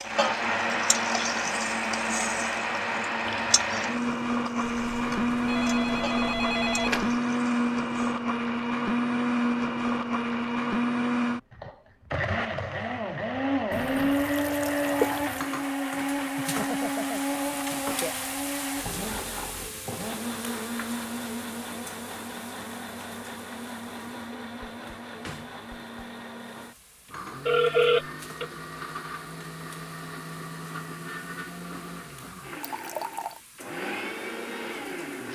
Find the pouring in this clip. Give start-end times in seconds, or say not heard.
3.2-3.8, 13.7-15.4, 32.6-33.4.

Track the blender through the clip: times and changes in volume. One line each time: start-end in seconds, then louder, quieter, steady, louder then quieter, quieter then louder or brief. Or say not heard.
0.0-35.2 quieter.